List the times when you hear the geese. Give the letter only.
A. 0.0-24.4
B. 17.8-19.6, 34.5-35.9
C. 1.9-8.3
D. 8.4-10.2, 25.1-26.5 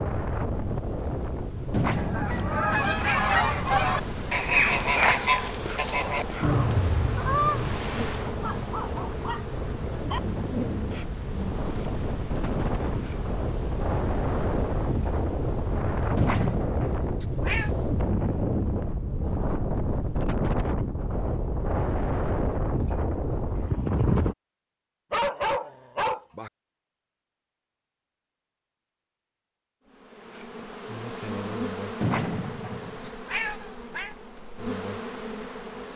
C.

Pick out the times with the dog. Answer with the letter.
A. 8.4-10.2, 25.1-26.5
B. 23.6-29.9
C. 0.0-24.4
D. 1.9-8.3
A.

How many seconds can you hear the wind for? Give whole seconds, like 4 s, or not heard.
24 s.